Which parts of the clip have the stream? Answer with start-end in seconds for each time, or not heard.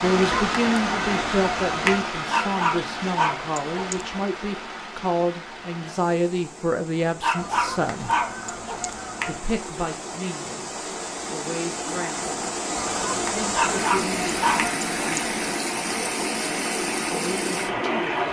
0.0-18.2.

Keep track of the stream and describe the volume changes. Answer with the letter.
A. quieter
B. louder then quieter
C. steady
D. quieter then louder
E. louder
D.